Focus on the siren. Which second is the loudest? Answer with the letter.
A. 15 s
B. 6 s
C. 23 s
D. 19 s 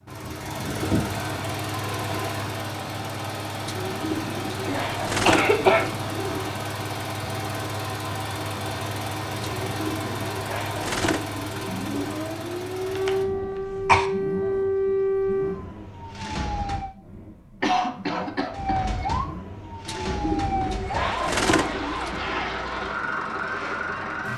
A.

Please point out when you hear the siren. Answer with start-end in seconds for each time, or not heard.
11.4-16.9, 18.5-24.3.